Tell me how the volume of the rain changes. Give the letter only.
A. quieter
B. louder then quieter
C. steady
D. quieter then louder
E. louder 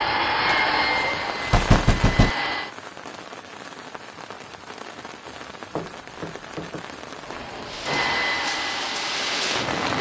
D.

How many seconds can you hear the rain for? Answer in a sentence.
You can hear the rain for 10 seconds altogether.